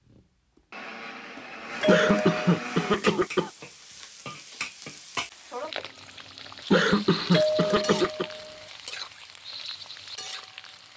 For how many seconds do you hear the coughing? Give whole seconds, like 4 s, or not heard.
3 s.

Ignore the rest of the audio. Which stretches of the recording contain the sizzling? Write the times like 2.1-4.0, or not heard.
2.8-10.9.